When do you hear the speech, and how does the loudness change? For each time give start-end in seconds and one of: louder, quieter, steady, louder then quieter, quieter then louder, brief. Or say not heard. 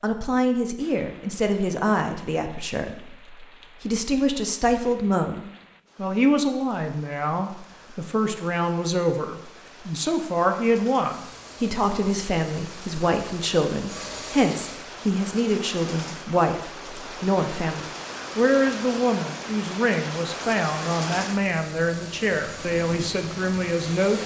0.0-24.2 steady.